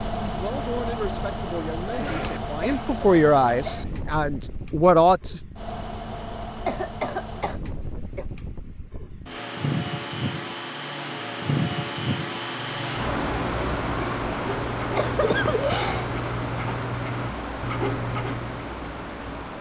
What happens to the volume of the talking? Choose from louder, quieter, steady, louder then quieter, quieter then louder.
louder.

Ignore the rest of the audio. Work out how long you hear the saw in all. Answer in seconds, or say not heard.
6 s.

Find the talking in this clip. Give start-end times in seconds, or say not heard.
0.1-5.4.